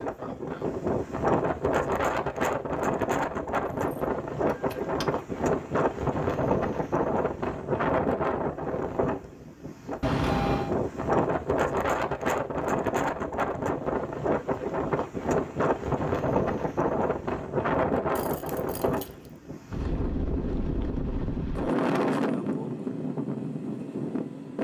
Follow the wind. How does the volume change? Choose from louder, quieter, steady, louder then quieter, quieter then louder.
steady.